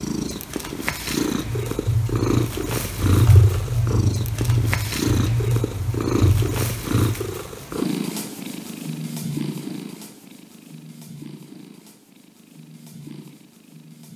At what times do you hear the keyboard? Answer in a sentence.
You can hear the keyboard from 1.4 to 7.2 s.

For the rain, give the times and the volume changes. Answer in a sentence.
You can't hear the rain here.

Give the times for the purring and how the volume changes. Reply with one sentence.
You can hear the purring from 0.0 to 14.1 s, getting quieter.